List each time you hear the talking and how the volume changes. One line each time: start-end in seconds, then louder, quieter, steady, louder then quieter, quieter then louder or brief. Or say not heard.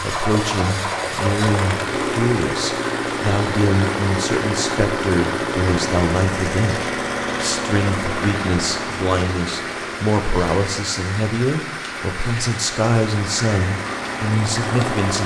0.0-15.2 steady.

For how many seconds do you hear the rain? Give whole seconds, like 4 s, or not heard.
15 s.